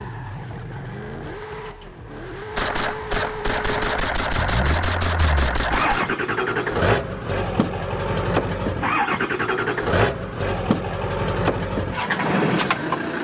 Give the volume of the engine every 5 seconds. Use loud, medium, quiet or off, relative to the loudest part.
medium, loud, loud.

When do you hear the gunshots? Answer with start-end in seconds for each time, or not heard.
2.5-6.2.